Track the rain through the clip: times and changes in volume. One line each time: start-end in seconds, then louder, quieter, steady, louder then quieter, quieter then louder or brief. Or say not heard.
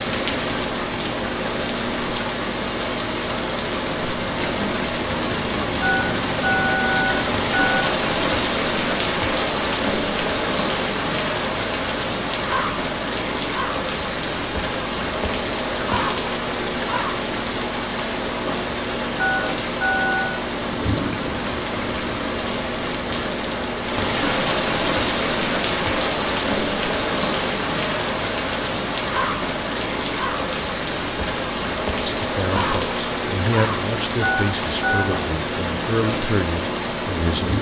0.0-37.5 steady.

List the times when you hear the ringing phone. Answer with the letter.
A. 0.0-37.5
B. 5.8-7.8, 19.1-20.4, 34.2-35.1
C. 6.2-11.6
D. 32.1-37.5
B.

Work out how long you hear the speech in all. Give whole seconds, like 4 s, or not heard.
5 s.